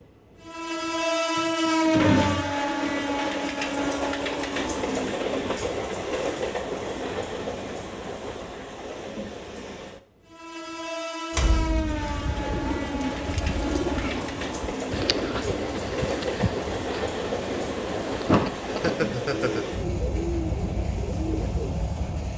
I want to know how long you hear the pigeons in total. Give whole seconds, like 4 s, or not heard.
10 s.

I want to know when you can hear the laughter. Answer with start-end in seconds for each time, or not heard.
18.6-19.6.